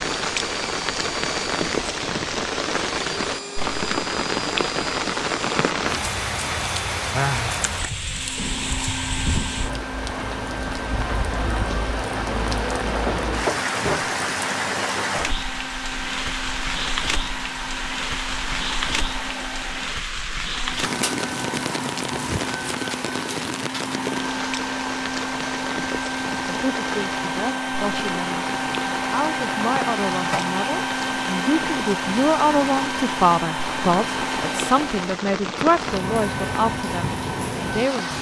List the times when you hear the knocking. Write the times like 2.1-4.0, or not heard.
13.1-14.1.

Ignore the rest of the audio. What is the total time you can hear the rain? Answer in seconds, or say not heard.
38 s.